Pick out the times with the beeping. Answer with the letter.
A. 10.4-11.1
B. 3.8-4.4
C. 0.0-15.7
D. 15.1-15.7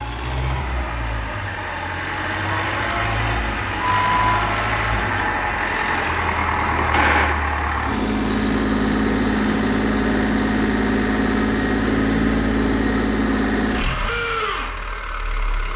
B.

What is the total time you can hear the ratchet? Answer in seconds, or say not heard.
not heard.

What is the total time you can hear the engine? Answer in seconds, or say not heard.
16 s.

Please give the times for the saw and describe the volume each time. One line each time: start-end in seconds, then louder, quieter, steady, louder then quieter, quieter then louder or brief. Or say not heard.
not heard.